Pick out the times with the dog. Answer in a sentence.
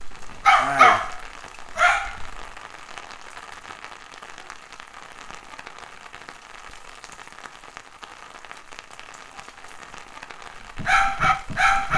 The dog can be heard from 0.0 to 2.5 s and from 10.6 to 11.9 s.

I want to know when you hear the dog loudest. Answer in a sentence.
The loudest moment of the dog is at 1 second.